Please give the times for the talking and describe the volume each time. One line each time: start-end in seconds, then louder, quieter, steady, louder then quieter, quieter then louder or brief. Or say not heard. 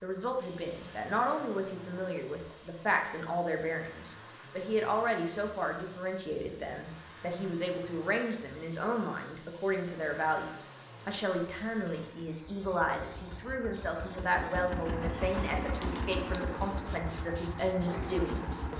0.0-18.7 steady.